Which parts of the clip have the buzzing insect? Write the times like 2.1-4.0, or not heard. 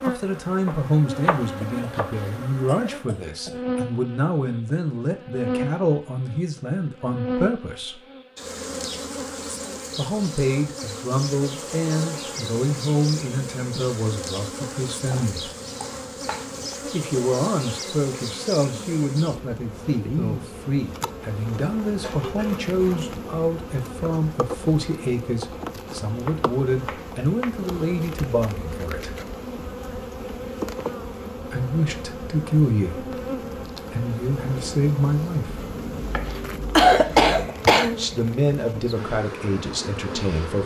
0.0-40.6.